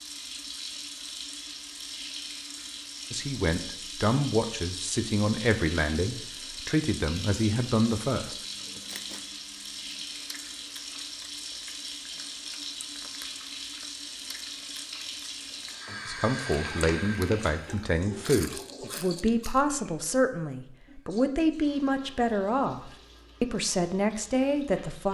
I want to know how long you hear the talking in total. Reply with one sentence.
You can hear the talking for 14 seconds altogether.